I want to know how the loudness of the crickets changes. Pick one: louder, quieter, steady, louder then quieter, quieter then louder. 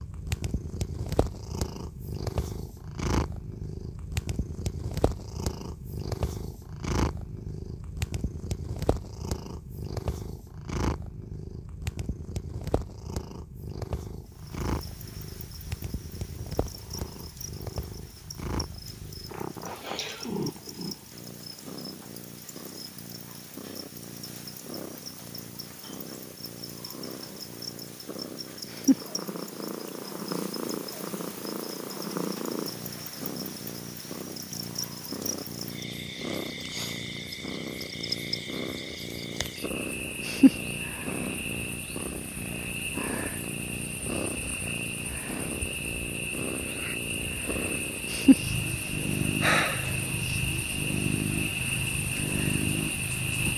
louder.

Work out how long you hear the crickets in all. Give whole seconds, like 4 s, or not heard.
39 s.